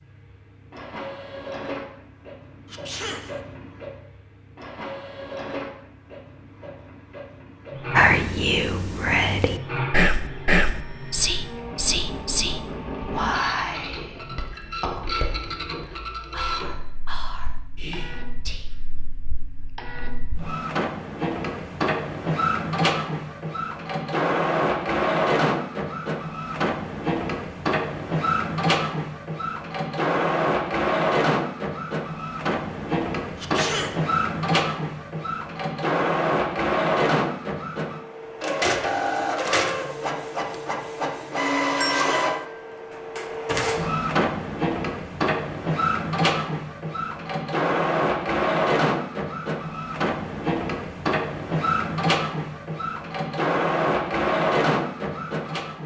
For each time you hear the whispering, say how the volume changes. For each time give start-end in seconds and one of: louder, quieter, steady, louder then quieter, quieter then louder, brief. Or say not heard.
7.9-18.7 quieter.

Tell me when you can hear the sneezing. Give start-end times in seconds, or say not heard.
2.6-3.4, 33.4-34.0, 41.9-42.4.